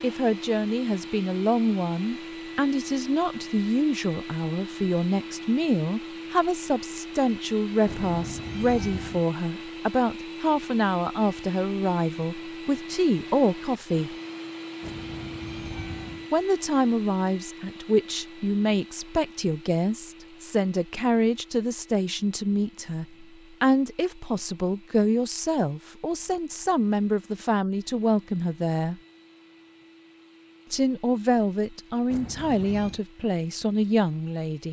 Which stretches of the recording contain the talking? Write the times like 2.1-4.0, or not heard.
0.0-14.2, 16.3-29.0, 30.7-34.6.